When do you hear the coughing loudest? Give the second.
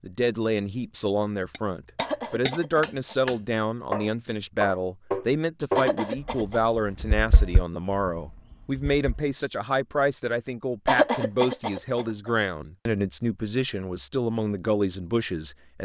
11 s.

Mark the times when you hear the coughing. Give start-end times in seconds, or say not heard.
1.9-3.1, 5.8-6.6, 10.8-12.3.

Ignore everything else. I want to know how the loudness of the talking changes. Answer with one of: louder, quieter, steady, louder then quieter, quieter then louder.
steady.